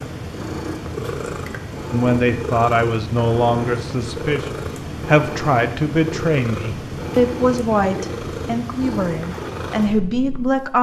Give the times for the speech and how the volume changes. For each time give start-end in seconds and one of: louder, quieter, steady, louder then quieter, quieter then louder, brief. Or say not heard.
1.9-10.7 steady.